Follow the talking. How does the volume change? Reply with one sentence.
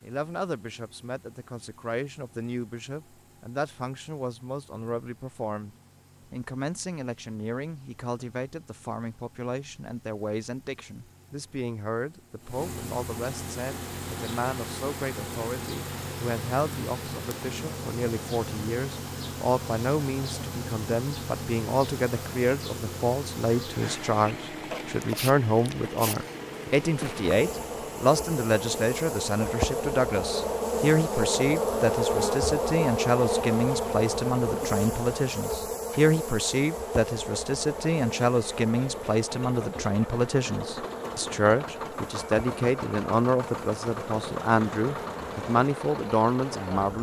The loudness of the talking goes up.